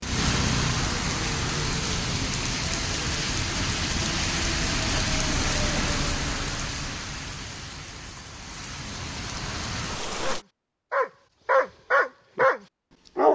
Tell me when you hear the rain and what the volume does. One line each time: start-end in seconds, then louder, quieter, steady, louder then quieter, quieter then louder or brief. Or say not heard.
0.0-10.4 quieter.